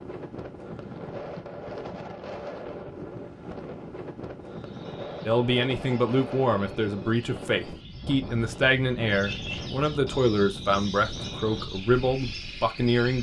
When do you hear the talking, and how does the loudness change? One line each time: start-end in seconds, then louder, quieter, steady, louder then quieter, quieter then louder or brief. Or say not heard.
5.2-13.1 steady.